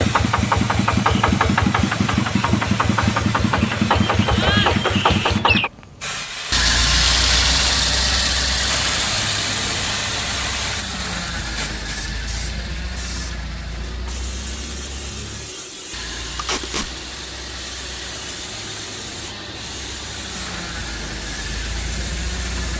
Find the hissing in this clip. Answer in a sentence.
You can hear the hissing from 0.0 to 22.7 s.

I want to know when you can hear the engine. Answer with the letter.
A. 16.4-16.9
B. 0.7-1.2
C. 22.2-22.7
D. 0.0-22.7
D.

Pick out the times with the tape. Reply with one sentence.
You can hear the tape from 16.4 to 16.9 s.